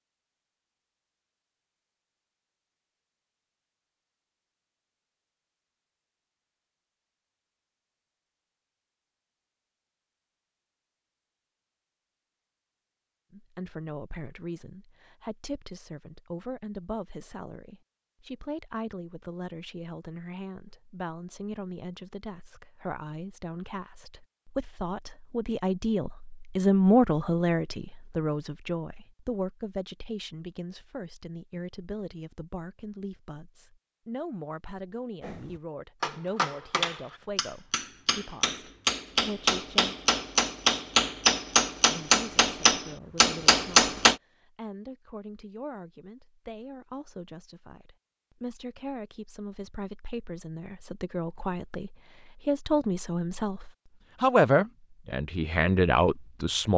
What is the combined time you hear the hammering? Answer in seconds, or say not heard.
9 s.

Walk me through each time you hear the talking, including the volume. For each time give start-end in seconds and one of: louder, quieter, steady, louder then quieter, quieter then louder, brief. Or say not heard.
13.3-40.0 louder then quieter
41.9-56.7 louder.